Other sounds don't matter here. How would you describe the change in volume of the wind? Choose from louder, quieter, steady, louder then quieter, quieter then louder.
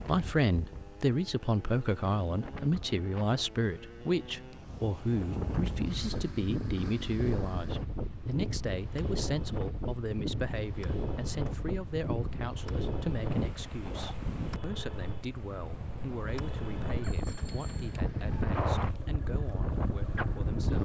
louder.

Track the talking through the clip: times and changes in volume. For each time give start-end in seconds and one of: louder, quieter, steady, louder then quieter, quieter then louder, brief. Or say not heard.
0.0-20.8 quieter.